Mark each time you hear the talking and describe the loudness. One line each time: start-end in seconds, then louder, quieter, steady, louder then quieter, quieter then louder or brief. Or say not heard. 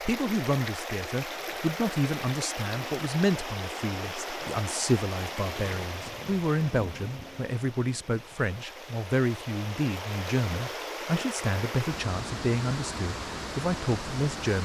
0.1-14.6 steady.